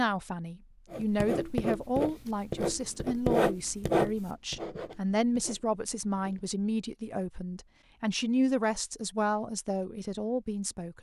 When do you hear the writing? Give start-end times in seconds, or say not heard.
0.9-6.5.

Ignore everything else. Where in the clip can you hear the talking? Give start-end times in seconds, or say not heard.
0.0-10.9.